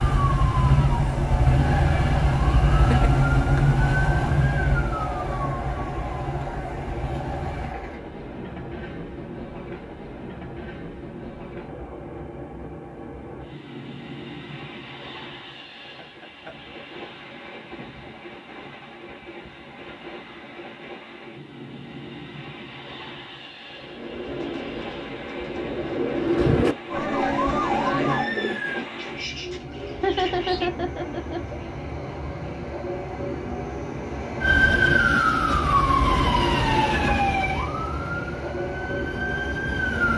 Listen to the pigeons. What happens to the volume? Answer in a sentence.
The volume of the pigeons goes up, then down.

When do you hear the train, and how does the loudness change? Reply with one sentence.
You can hear the train from 0.0 to 40.1 s, getting quieter then louder.